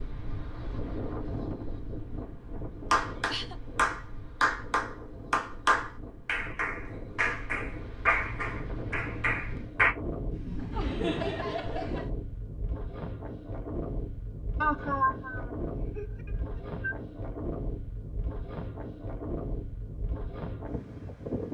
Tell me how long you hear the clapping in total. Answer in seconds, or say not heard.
7 s.